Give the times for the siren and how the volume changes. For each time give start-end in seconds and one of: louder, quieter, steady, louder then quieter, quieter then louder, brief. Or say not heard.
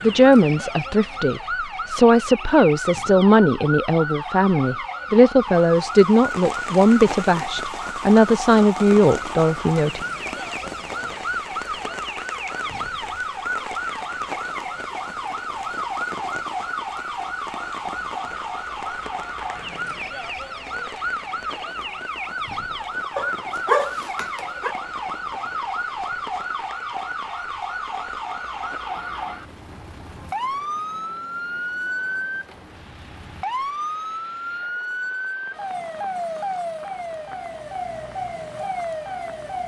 0.0-39.6 steady.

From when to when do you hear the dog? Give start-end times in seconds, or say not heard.
23.1-24.8.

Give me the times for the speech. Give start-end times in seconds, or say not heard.
0.0-10.1.